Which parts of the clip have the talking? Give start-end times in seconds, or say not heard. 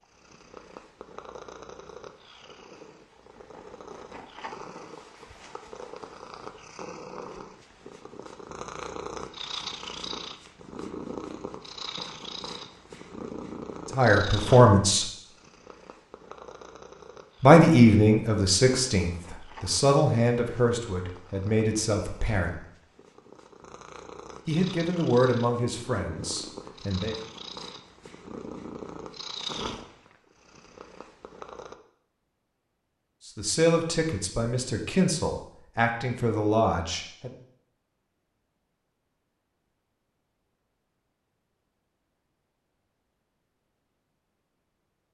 13.9-15.1, 17.4-22.6, 24.4-27.1, 33.2-37.3.